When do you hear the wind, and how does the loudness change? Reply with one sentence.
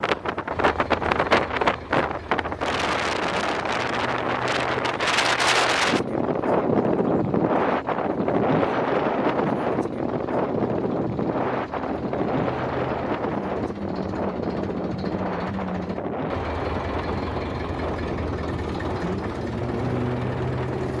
You can hear the wind from 0.0 to 20.9 s, getting quieter.